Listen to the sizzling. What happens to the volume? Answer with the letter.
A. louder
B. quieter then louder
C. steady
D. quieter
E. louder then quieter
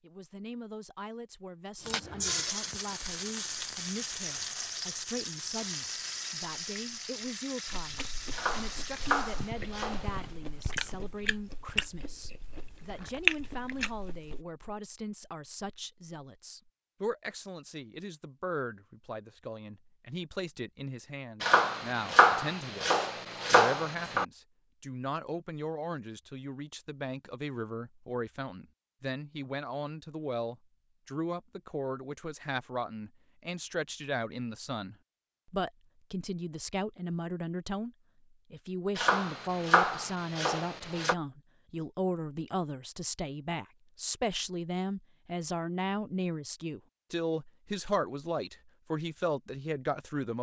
D.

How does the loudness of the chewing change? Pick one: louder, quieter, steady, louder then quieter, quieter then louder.
louder.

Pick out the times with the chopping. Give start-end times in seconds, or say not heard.
8.3-10.2, 21.4-24.2, 39.0-41.1.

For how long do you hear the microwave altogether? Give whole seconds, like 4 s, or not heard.
not heard.